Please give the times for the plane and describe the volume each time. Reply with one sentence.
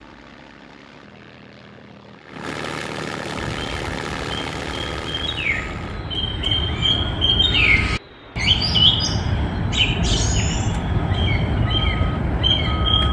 The plane can be heard from 0.0 to 13.0 s, getting louder then quieter.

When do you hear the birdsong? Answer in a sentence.
You can hear the birdsong from 3.4 to 13.0 s.